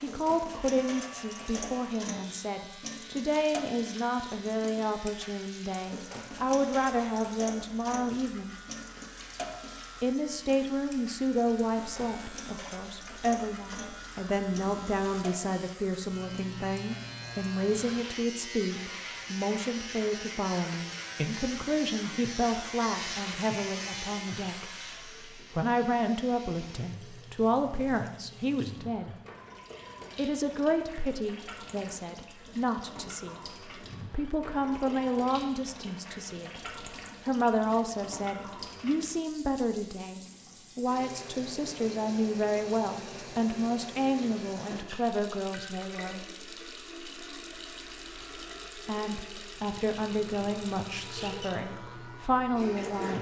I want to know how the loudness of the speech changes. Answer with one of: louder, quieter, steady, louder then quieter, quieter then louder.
steady.